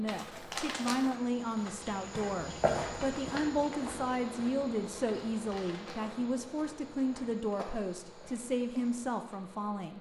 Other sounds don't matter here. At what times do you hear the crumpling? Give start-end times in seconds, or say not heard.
0.1-1.1, 5.3-6.2.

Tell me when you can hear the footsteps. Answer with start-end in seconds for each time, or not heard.
1.0-9.4.